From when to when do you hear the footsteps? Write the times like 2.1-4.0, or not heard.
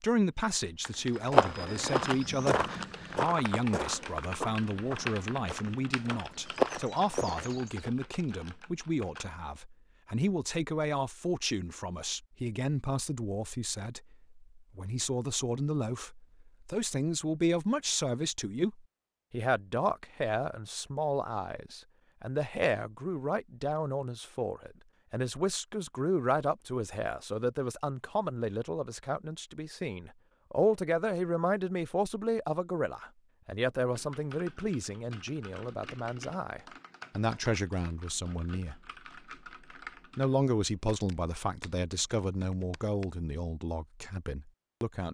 1.1-7.9.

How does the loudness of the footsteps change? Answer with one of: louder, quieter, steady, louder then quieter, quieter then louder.
quieter then louder.